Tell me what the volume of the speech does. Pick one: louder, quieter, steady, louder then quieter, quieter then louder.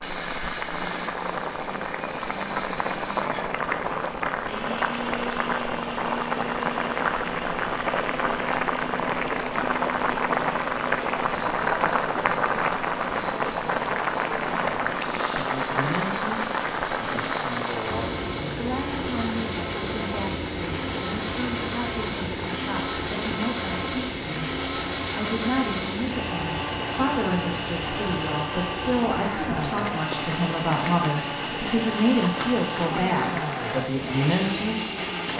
louder.